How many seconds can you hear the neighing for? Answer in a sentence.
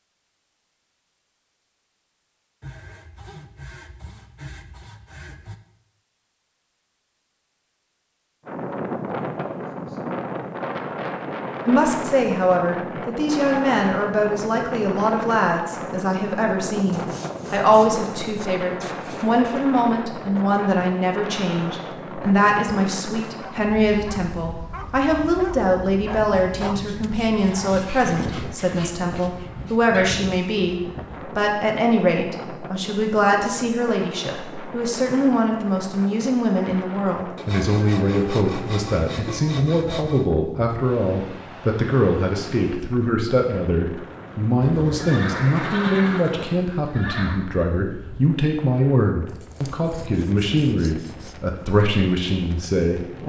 The neighing can be heard for 3 seconds in total.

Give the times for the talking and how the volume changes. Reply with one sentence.
You can hear the talking from 11.7 to 53.2 s, at a steady volume.